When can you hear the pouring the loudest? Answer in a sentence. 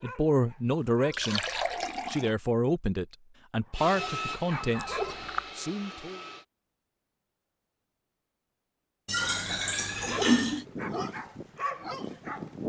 The volume of the pouring peaks at 10 seconds.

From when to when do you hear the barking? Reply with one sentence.
The barking can be heard from 0.0 to 1.8 s, from 3.6 to 5.3 s and from 10.0 to 12.6 s.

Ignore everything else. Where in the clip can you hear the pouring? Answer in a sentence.
The pouring can be heard from 1.1 to 2.4 s, from 4.8 to 5.5 s and from 9.1 to 10.7 s.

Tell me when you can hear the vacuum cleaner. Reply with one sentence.
The vacuum cleaner can be heard from 3.7 to 6.5 s.